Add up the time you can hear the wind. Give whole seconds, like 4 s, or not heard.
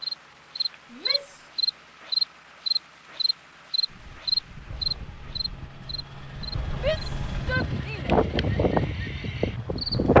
6 s.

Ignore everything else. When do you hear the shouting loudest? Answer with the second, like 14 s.
7 s.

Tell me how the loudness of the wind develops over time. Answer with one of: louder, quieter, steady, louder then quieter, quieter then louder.
louder.